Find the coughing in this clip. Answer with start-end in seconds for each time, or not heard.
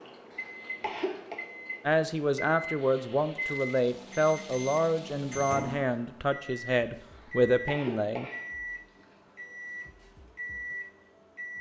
0.3-1.4, 7.2-9.1.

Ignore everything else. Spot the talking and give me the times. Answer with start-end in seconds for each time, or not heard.
1.9-8.3.